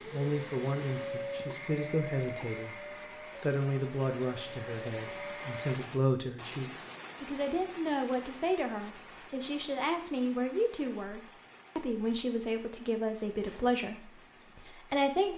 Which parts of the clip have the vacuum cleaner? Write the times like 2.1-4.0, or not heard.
0.0-5.8.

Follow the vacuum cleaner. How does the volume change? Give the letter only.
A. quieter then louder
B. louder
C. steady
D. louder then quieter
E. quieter
A.